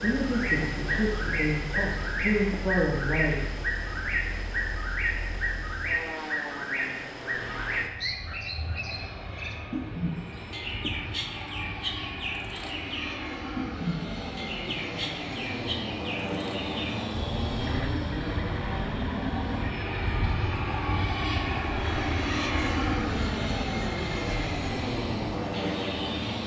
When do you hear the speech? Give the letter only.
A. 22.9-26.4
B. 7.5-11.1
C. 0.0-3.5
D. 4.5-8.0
C.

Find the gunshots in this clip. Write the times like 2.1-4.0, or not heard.
not heard.